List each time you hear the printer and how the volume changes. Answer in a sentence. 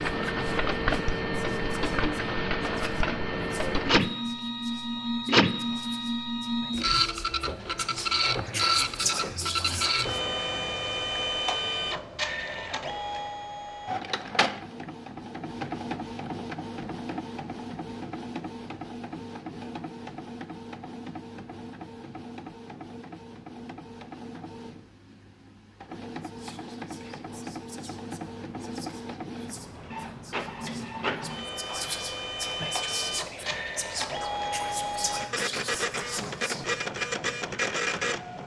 The printer can be heard from 0.0 to 38.4 s, getting quieter then louder.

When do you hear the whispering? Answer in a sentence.
You can hear the whispering from 0.2 to 10.2 s and from 26.2 to 36.8 s.